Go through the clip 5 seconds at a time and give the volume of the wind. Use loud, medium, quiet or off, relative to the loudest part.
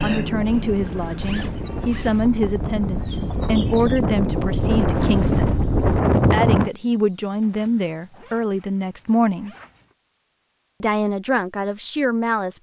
medium, loud, off.